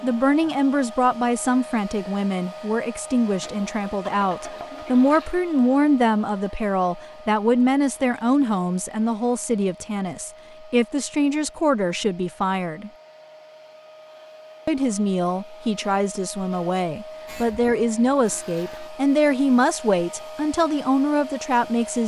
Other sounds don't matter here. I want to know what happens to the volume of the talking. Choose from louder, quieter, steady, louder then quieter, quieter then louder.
steady.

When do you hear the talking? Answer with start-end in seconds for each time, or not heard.
0.0-12.9, 14.7-22.0.